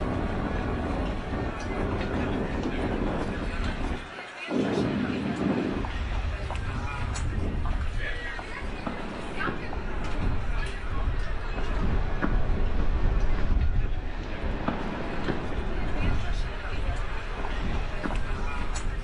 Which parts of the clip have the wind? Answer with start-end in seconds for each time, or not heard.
0.0-19.0.